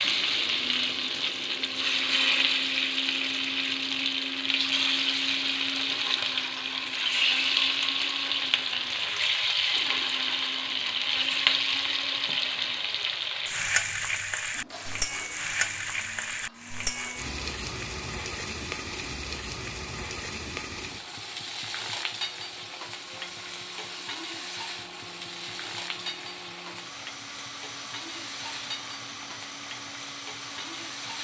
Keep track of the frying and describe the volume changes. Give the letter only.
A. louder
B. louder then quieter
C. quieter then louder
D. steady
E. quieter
E.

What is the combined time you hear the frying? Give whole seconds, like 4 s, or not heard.
31 s.